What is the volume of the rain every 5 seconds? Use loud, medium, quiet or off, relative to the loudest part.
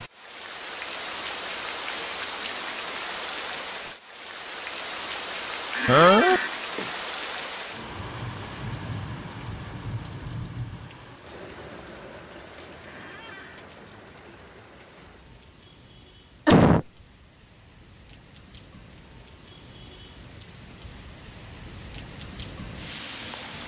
loud, loud, medium, quiet, medium.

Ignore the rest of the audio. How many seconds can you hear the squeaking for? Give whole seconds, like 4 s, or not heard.
2 s.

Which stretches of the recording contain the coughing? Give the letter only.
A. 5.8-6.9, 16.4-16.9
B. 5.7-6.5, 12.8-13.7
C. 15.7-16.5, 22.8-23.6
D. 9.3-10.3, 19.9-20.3
A.